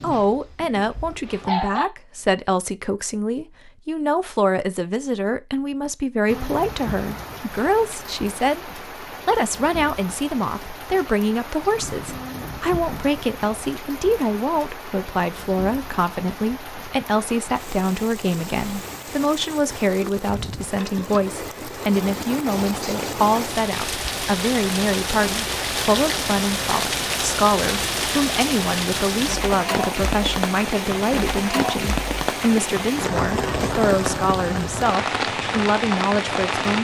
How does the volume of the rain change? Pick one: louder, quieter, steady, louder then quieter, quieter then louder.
louder.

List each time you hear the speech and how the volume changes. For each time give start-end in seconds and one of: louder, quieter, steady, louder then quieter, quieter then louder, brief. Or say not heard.
0.0-36.7 steady.